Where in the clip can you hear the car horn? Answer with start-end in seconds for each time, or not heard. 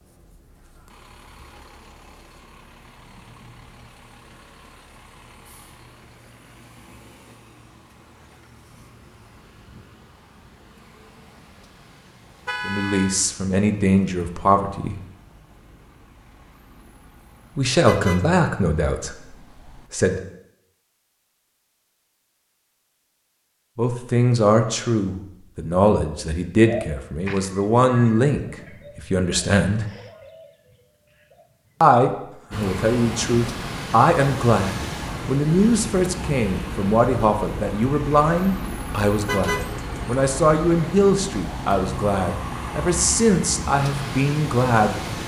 12.4-13.2, 17.9-18.4, 39.2-40.1.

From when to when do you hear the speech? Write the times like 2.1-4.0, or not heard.
12.7-15.0, 17.6-20.2, 23.8-29.9, 31.8-45.0.